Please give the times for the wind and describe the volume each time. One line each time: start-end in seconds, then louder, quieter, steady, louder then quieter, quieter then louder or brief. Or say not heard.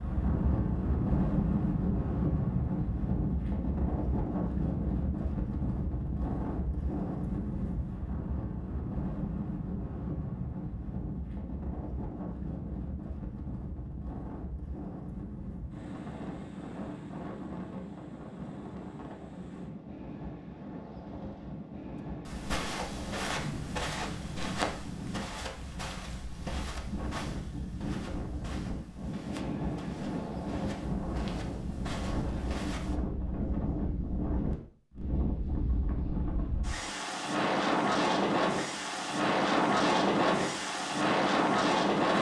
0.0-42.1 quieter then louder.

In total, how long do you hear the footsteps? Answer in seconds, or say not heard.
11 s.